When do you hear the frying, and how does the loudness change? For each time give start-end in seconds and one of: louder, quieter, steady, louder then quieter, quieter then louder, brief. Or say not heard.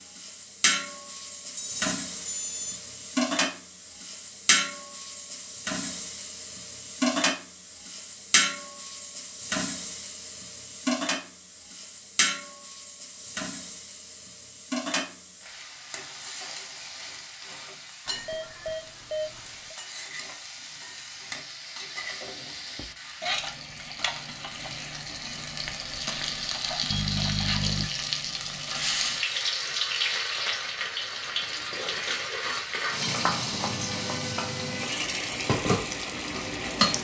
0.0-36.9 quieter then louder.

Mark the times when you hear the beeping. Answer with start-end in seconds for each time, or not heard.
1.6-2.9, 18.1-19.8, 26.9-27.9.